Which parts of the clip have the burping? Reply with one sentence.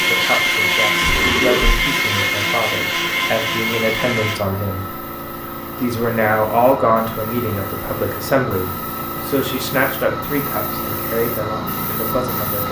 The burping can be heard from 1.0 to 1.8 s.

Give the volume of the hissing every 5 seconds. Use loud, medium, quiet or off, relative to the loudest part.
medium, loud, loud.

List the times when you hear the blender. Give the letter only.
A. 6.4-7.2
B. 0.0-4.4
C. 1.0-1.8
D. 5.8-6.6
B.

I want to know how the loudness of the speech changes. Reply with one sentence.
The volume of the speech goes up, then down.